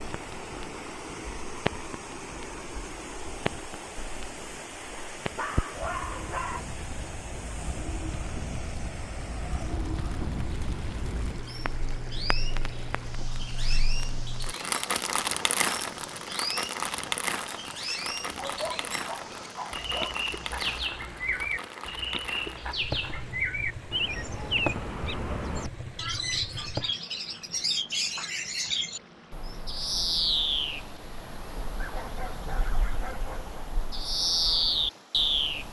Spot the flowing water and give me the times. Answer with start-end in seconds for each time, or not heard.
0.0-35.4.